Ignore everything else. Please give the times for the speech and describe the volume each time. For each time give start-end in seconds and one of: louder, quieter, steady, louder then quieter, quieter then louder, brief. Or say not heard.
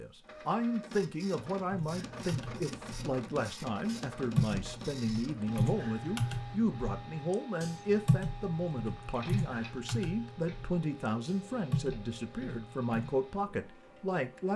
0.0-14.5 steady.